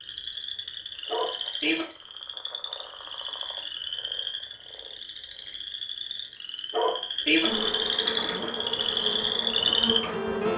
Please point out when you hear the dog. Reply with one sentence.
You can hear the dog from 1.1 to 1.9 s and from 6.7 to 7.5 s.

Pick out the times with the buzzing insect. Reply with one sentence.
You can hear the buzzing insect from 7.4 to 10.5 s.